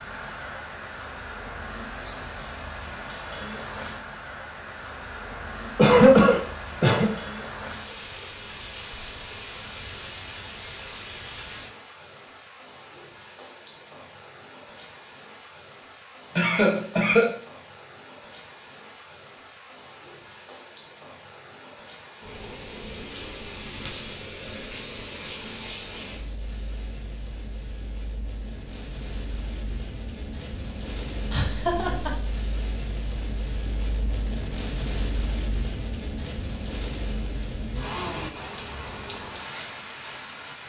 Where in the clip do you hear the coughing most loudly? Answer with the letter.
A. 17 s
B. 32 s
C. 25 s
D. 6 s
D.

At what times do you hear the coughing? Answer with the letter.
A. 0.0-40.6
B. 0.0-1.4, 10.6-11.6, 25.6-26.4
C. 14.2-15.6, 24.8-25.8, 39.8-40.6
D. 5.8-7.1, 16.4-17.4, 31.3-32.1
D.